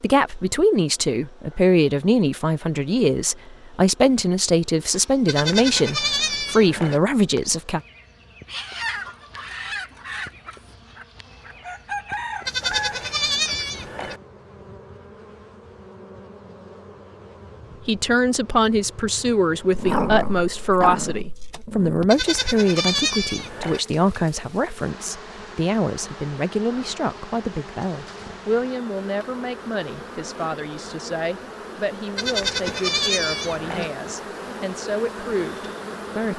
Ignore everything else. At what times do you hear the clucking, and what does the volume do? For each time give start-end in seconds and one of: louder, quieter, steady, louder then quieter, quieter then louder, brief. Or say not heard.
8.4-13.7 quieter then louder.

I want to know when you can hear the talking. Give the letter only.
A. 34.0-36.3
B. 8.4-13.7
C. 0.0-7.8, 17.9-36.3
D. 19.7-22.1
C.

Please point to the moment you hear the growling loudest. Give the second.
20 s.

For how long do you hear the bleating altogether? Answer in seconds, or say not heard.
7 s.